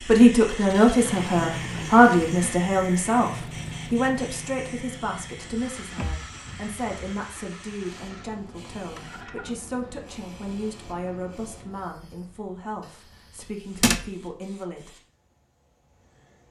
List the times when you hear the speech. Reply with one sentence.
You can hear the speech from 0.1 to 14.9 s.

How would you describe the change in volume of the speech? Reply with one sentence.
The volume of the speech goes down.